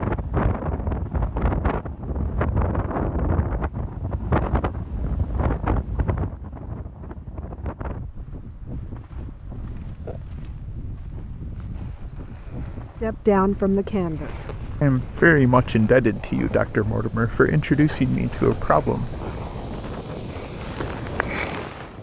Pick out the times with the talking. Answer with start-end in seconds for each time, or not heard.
13.0-19.1.